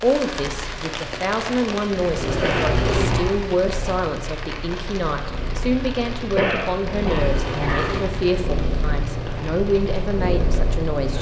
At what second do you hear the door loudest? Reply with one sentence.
The loudest moment of the door is at 3 seconds.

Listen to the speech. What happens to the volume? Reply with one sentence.
The volume of the speech stays about the same.